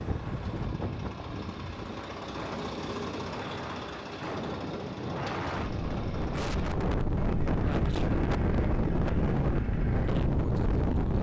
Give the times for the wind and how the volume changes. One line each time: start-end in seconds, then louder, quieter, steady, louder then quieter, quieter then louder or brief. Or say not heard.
0.0-11.1 louder.